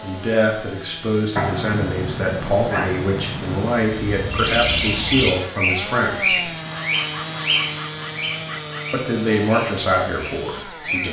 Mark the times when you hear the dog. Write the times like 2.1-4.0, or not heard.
1.4-3.8, 6.7-9.0.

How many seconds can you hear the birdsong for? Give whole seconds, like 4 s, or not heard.
7 s.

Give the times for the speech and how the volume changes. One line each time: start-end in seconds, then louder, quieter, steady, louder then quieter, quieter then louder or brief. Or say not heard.
0.0-6.4 steady
8.9-11.0 brief.